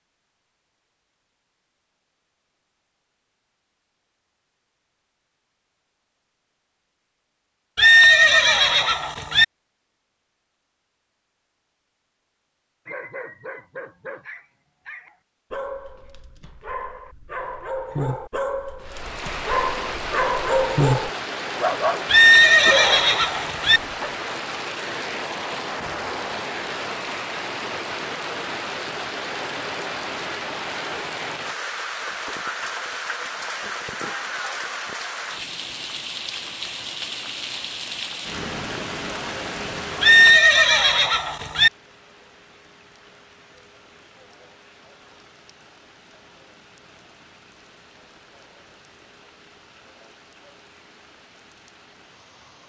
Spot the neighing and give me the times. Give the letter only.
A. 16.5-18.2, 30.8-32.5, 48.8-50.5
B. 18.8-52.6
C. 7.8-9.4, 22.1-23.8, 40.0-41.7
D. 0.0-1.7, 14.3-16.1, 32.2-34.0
C.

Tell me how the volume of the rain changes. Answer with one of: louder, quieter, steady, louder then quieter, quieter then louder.
quieter.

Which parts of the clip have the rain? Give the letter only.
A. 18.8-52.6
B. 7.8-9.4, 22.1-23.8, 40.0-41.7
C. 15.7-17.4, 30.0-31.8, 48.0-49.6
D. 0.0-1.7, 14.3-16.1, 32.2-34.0
A.